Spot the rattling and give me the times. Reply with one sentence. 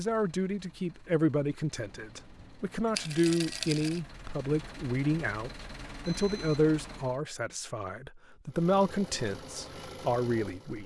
The rattling can be heard from 3.0 to 4.0 s.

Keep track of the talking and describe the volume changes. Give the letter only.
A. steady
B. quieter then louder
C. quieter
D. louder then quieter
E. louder
A.